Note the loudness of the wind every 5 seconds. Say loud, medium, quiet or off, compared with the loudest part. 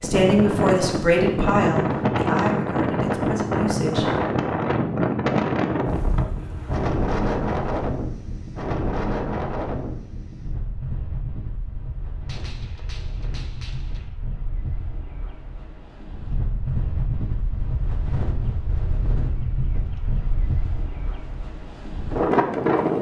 loud, loud, quiet, medium, loud.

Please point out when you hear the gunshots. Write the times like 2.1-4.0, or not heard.
12.2-14.1.